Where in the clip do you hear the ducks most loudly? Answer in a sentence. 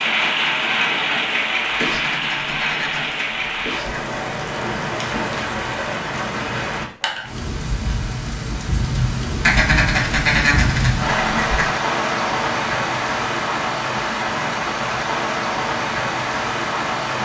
The loudest moment of the ducks is at 10 seconds.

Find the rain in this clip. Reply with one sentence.
The rain can be heard from 0.0 to 17.2 s.